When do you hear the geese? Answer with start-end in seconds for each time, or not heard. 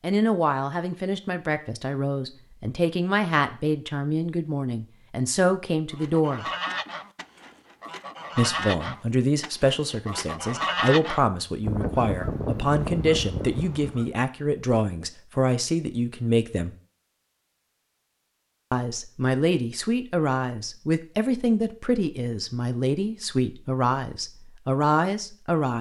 5.9-14.1.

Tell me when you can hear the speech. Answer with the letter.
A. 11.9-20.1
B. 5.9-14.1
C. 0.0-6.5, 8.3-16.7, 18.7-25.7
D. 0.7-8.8
C.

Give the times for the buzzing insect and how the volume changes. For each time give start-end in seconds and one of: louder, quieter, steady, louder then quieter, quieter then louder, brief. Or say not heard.
not heard.